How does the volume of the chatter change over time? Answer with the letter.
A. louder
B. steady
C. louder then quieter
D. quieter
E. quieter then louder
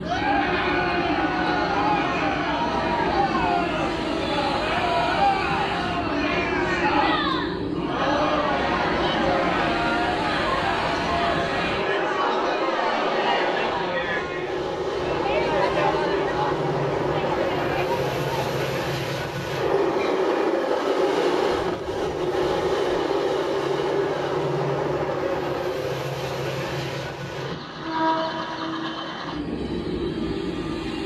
B.